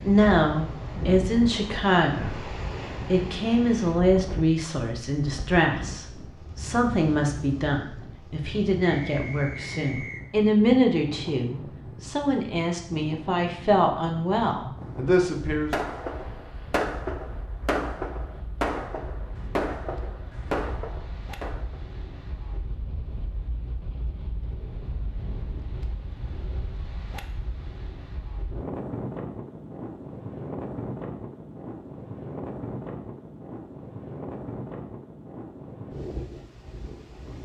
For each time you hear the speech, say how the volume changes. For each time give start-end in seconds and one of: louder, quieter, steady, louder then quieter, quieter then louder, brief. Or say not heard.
0.0-2.5 brief
3.1-15.7 steady.